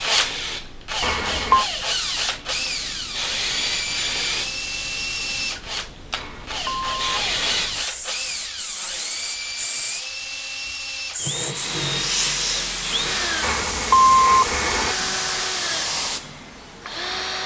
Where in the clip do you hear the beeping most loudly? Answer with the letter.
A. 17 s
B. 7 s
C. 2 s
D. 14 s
D.